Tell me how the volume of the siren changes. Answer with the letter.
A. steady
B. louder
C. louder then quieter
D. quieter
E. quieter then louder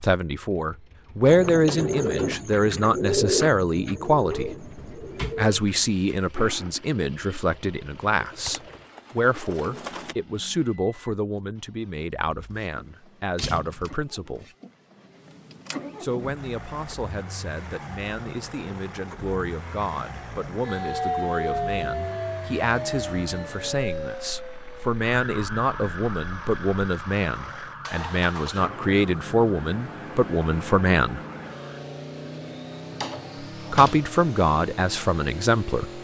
D.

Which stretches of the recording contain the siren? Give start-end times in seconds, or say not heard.
20.6-31.9.